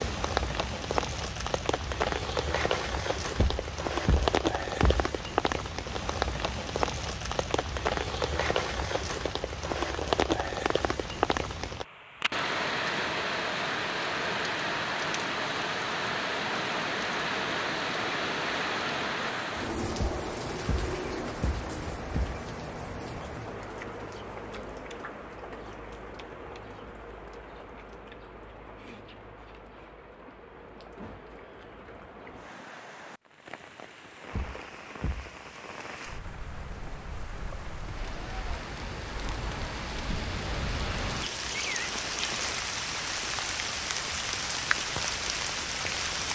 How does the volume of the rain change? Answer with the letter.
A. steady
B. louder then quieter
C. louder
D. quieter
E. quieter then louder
E.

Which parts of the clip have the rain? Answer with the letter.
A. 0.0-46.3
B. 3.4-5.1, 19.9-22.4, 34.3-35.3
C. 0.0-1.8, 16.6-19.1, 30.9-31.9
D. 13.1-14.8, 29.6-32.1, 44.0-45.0
A.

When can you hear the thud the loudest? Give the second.
5 s.